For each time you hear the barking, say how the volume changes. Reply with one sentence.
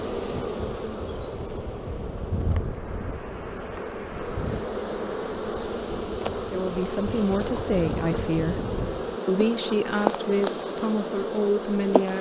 The barking can't be heard in this clip.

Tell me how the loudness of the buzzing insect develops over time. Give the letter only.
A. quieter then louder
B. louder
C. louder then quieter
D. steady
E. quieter
B.